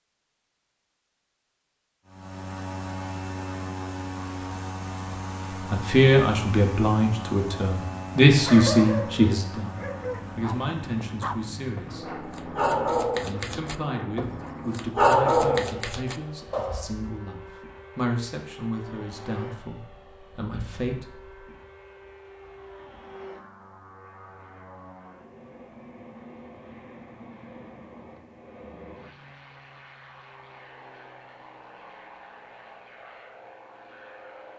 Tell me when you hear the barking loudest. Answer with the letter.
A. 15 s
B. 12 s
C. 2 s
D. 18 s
A.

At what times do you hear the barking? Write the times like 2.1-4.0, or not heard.
8.4-16.9.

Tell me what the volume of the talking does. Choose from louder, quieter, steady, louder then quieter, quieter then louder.
quieter.